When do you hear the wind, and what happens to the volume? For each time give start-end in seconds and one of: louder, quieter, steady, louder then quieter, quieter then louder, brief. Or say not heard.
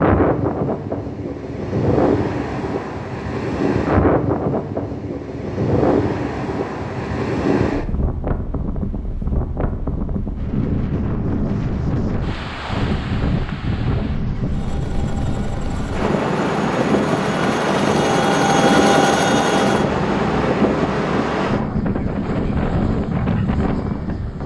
0.0-24.4 steady.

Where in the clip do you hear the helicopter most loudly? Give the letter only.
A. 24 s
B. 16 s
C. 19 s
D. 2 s
C.